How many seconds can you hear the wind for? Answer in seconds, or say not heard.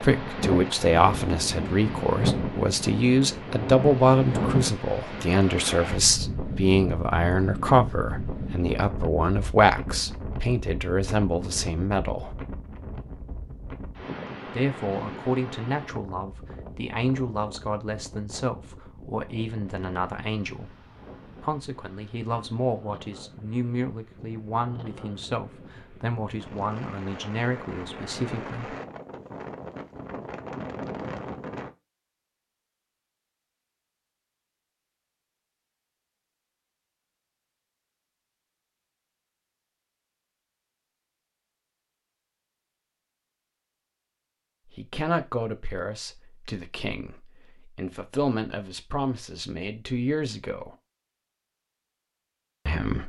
32 s.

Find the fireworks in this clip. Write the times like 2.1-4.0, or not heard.
not heard.